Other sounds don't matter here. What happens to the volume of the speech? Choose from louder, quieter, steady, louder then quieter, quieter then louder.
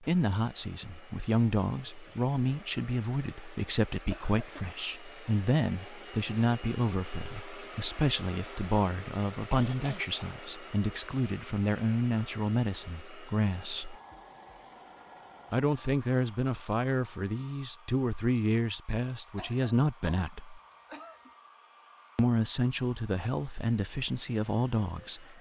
steady.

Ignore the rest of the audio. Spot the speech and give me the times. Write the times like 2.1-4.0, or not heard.
0.0-13.9, 15.5-20.6, 22.1-25.3.